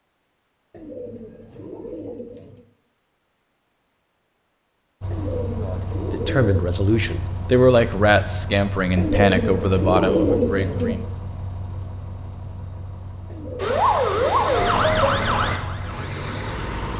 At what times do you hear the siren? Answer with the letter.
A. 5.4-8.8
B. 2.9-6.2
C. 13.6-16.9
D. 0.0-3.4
C.